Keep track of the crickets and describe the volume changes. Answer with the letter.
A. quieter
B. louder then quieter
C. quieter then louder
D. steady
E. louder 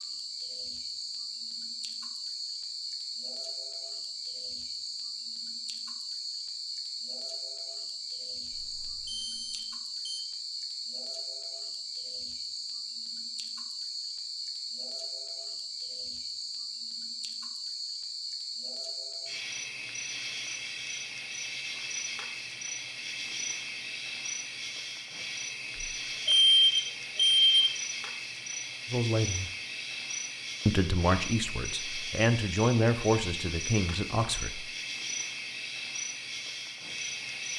D.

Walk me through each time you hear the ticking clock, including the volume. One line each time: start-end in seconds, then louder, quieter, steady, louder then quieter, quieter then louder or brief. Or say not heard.
not heard.